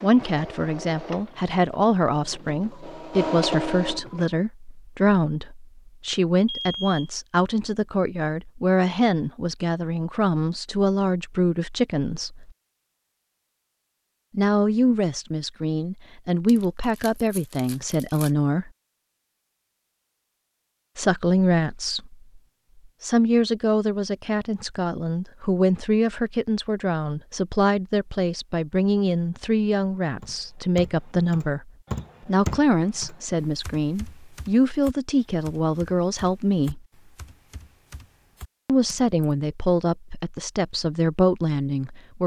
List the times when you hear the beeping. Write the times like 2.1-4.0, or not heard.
6.5-7.1.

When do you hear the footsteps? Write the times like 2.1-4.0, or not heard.
not heard.